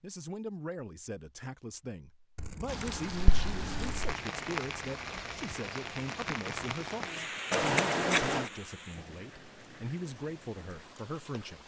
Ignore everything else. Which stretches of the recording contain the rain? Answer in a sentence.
The rain can be heard from 2.6 to 11.6 s.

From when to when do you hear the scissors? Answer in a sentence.
You can hear the scissors from 2.4 to 4.2 s and from 7.5 to 8.5 s.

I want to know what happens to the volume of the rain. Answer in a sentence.
The volume of the rain goes down.